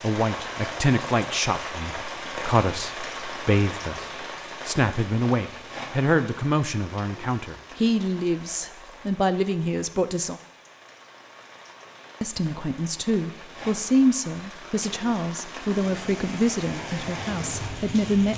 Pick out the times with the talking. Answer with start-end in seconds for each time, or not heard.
0.0-10.3, 12.2-18.3.